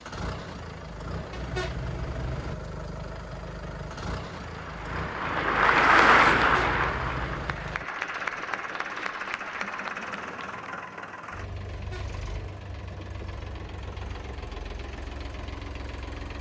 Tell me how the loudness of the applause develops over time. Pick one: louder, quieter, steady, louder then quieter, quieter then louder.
louder then quieter.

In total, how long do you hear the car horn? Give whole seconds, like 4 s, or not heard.
3 s.